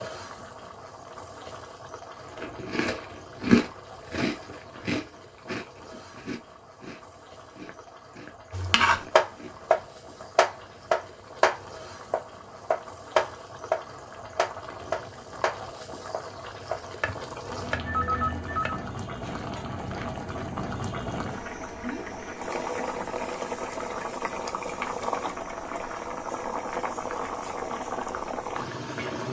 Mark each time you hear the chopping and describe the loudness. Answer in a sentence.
You can hear the chopping from 8.5 to 20.1 s, getting quieter.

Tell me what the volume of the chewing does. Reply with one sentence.
The loudness of the chewing goes down.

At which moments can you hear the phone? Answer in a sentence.
The phone can be heard from 17.4 to 18.8 s.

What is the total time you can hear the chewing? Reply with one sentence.
You can hear the chewing for 7 seconds altogether.